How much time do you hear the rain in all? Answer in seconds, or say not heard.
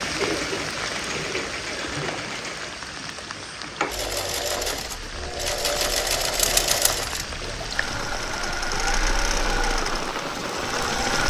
11 s.